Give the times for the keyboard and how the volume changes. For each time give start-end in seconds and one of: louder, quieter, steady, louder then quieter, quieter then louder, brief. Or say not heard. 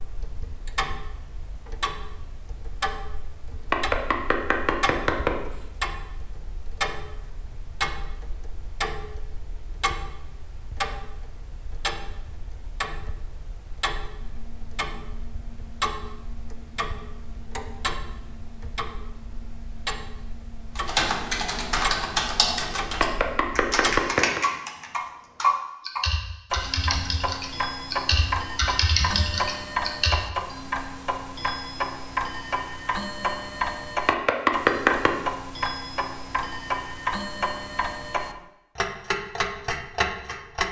20.8-30.2 quieter then louder.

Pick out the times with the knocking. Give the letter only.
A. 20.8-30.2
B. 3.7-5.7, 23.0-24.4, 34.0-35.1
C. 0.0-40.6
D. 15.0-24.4
B.